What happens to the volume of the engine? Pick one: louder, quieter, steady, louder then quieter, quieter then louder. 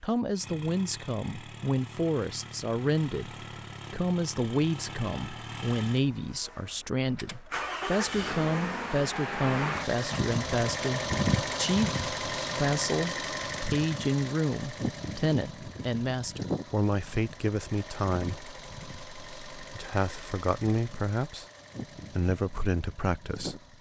louder then quieter.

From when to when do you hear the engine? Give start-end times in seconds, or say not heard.
0.1-23.7.